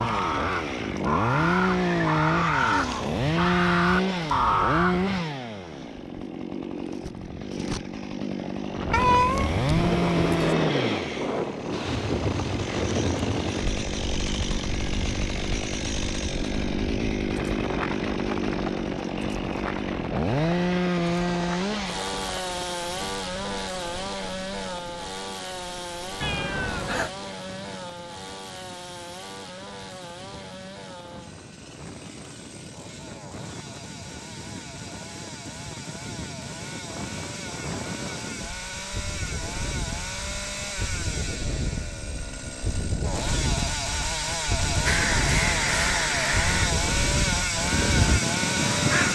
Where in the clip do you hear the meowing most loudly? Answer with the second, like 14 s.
9 s.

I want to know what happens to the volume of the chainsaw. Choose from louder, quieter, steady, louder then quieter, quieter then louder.
quieter then louder.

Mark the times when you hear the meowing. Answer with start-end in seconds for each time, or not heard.
8.9-10.6, 26.2-27.1.